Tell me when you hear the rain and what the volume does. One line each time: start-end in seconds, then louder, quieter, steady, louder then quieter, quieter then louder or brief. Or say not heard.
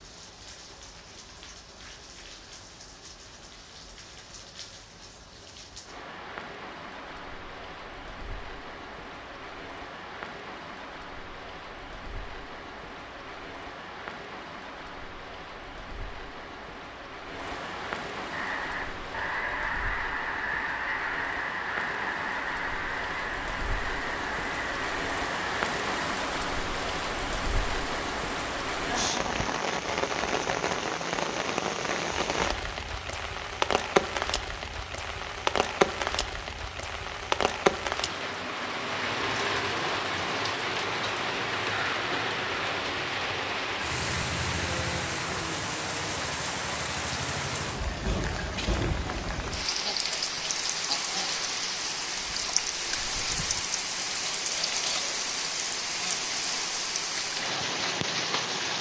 0.0-58.7 louder.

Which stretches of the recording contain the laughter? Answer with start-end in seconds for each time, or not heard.
28.8-29.6.